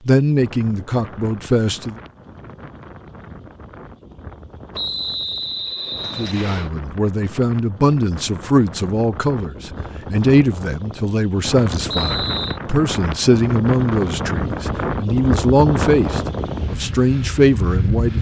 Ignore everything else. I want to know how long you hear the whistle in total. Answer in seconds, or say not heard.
3 s.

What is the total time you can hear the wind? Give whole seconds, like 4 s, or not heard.
18 s.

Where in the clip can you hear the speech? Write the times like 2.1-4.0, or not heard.
0.1-1.9, 6.2-18.1.